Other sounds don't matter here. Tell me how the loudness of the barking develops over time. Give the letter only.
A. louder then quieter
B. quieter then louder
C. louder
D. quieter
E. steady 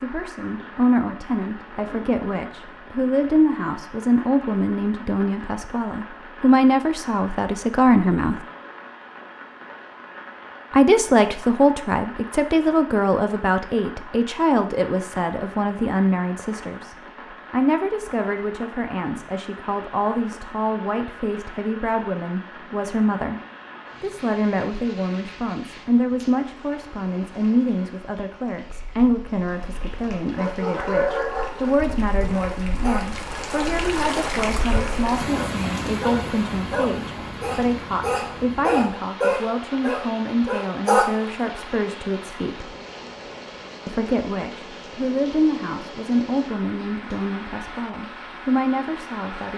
B.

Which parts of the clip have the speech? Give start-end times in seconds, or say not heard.
0.0-8.4, 10.7-23.4, 24.0-42.7, 43.9-49.5.